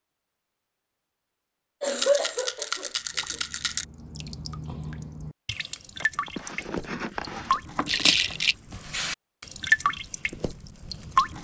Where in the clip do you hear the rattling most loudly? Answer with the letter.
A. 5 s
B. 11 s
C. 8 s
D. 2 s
C.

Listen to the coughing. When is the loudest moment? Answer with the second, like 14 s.
2 s.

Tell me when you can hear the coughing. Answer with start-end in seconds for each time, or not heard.
1.8-3.4, 6.0-7.6.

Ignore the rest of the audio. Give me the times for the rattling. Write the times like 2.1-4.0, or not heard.
1.9-3.9, 7.8-8.6.